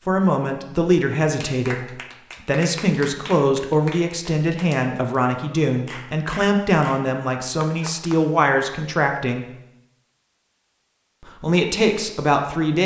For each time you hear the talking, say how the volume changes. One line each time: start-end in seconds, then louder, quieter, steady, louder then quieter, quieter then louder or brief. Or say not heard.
0.1-9.4 steady
11.2-12.8 brief.